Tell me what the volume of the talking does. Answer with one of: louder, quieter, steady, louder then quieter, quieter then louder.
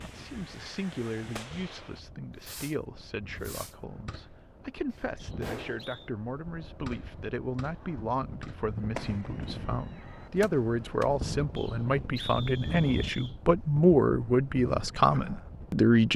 louder.